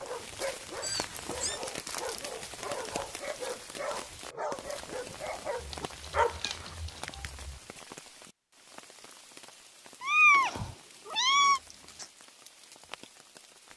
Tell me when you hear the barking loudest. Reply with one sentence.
The volume of the barking peaks at 6 seconds.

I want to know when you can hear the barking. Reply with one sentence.
The barking can be heard from 0.0 to 7.2 s.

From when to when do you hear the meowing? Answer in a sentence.
You can hear the meowing from 0.8 to 1.6 s, from 5.6 to 7.6 s and from 10.0 to 11.6 s.